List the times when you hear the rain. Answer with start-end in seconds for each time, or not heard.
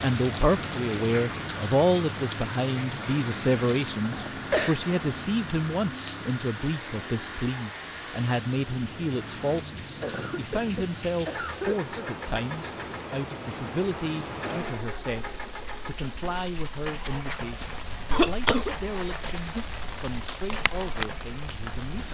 0.0-22.1.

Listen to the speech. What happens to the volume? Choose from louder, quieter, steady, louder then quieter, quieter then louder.
quieter.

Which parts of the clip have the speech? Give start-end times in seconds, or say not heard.
0.0-22.1.